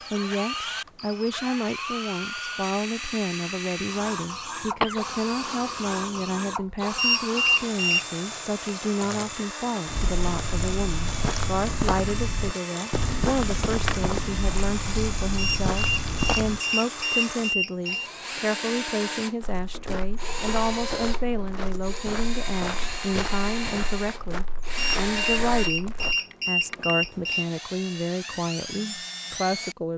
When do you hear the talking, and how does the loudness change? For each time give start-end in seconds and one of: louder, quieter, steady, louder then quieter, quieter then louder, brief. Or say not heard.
0.1-29.9 steady.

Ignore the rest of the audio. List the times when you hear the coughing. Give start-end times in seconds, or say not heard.
4.8-6.5.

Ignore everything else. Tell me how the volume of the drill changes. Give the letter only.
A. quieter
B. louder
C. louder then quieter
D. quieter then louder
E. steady
E.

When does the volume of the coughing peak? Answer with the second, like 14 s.
5 s.